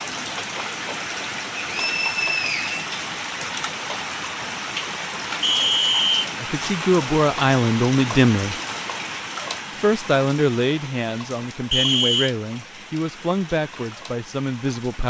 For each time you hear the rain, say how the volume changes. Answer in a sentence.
You can hear the rain from 0.0 to 15.0 s, getting quieter.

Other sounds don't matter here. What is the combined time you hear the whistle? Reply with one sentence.
You can hear the whistle for 3 seconds altogether.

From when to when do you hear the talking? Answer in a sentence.
You can hear the talking from 6.4 to 8.6 s and from 9.8 to 15.0 s.